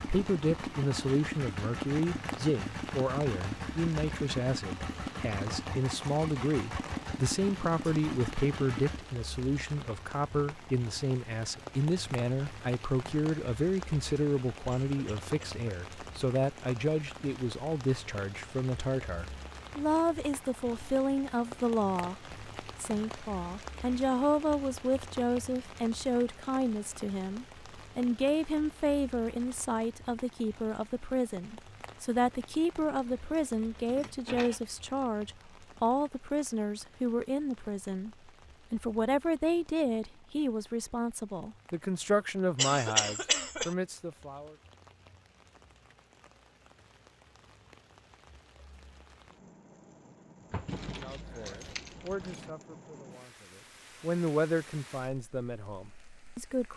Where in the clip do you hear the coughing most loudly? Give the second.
43 s.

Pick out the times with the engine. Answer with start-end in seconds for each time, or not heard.
0.0-9.0.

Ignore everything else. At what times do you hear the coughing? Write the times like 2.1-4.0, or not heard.
14.8-15.7, 42.5-43.8.